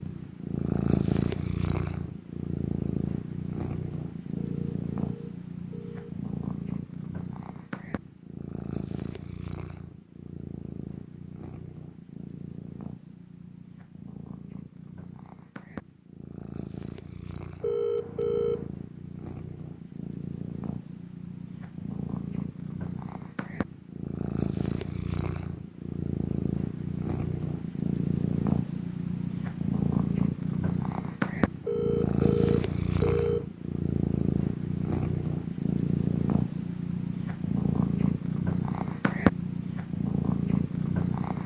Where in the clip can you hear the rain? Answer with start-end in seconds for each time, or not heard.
not heard.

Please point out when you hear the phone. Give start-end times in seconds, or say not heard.
4.3-6.2, 17.6-18.7, 31.6-33.5.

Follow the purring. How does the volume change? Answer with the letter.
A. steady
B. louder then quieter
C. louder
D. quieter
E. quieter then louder
E.